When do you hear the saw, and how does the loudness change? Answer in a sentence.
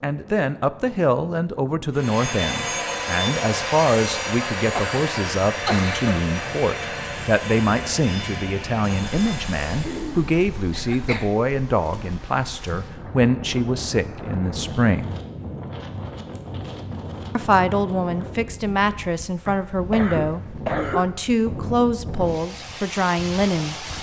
The saw can be heard from 1.9 to 10.0 s, getting quieter.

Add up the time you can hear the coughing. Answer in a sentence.
The coughing can be heard for 5 seconds in total.